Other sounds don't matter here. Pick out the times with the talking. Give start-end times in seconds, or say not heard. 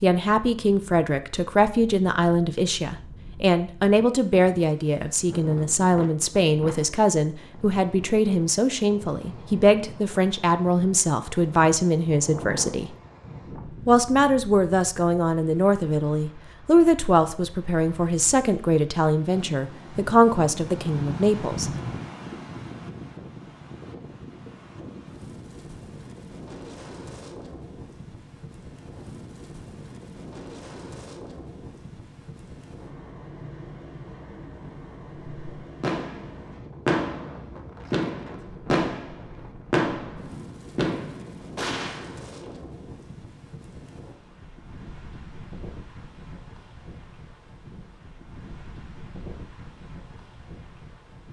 0.0-12.9, 13.8-21.7.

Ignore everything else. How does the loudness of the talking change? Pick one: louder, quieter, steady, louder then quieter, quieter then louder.
steady.